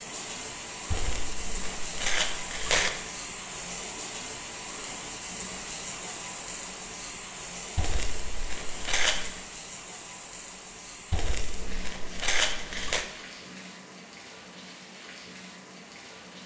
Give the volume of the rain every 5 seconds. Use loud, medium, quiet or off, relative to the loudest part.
loud, loud, medium, medium.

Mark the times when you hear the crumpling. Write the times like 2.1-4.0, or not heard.
0.9-2.9, 7.8-9.4, 11.1-13.1.